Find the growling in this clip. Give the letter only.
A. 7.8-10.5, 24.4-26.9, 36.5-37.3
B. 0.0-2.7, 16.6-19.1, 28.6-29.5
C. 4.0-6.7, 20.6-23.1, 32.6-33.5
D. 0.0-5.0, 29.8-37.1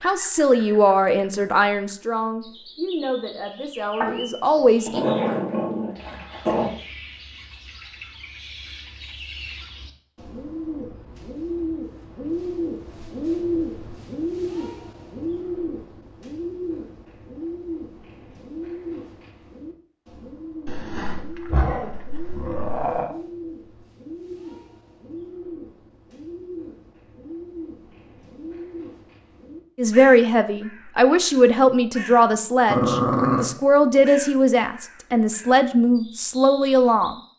C.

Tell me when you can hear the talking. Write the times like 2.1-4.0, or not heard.
0.0-5.0, 29.8-37.1.